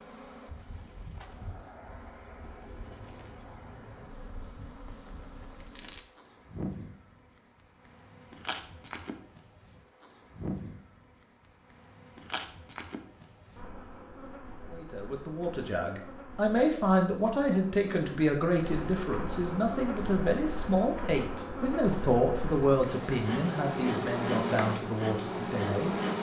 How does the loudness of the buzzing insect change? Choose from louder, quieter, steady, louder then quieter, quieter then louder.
louder.